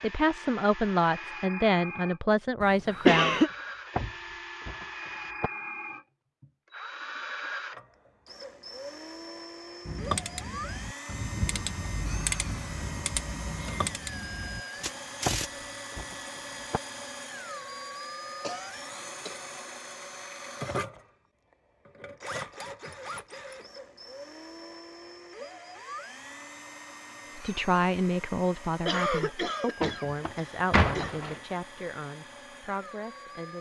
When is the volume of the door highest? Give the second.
31 s.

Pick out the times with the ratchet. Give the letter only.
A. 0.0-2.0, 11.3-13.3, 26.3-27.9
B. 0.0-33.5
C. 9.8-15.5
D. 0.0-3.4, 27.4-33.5
C.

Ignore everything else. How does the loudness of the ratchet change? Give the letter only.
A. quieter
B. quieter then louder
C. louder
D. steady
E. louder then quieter
E.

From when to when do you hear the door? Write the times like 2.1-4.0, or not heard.
3.5-5.5, 14.8-16.8, 29.8-31.4.